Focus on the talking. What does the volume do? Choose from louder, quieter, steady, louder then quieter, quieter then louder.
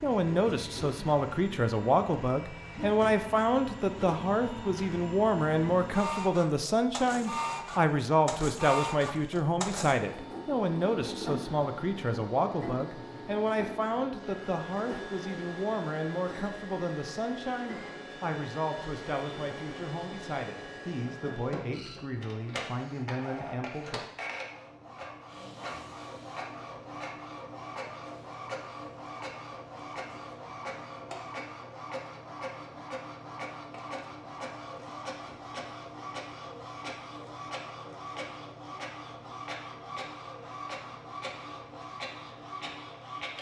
quieter.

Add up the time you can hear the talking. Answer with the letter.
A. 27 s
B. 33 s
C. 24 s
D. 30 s
C.